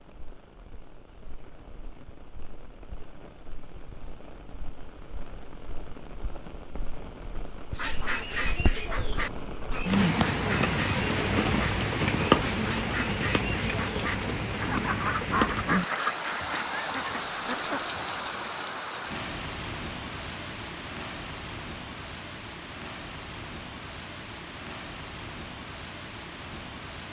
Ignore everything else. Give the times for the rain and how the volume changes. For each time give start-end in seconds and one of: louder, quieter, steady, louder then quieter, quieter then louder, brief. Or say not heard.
0.0-27.0 louder then quieter.